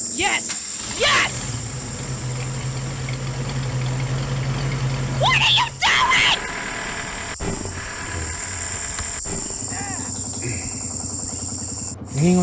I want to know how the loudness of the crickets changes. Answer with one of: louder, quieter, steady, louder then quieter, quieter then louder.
quieter then louder.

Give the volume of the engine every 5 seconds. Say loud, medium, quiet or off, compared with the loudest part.
loud, loud, medium.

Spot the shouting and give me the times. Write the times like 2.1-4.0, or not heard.
0.1-1.5, 5.2-6.4, 9.7-10.2.